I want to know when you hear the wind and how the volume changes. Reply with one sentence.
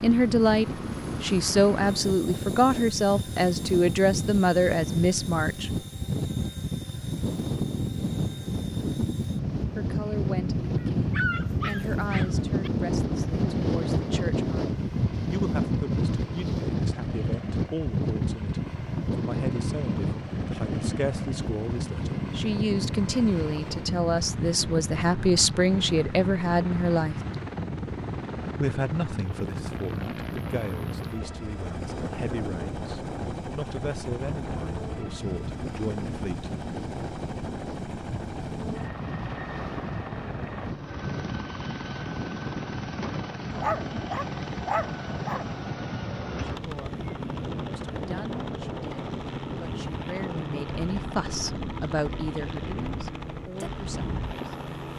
The wind can be heard from 0.0 to 54.9 s, getting quieter.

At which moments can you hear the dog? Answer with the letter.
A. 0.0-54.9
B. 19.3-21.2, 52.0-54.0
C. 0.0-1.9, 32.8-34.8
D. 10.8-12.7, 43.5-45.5
D.